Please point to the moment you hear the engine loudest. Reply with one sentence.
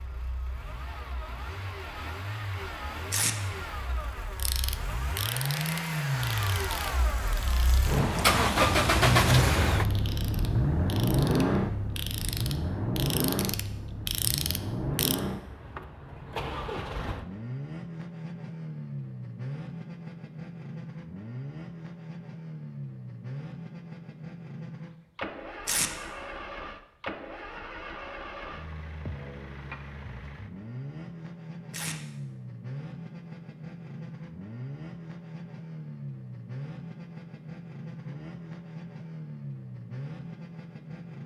The volume of the engine peaks at 9 seconds.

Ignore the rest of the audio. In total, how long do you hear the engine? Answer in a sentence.
The engine can be heard for 41 seconds in total.